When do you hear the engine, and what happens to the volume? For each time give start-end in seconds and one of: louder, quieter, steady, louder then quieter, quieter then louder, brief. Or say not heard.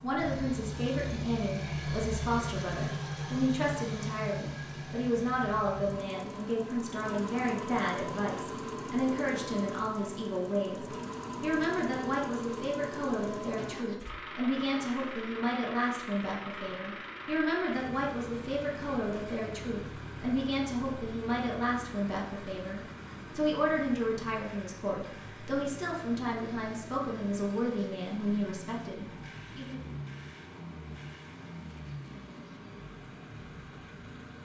0.0-34.4 quieter.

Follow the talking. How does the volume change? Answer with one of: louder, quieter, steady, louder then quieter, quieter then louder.
steady.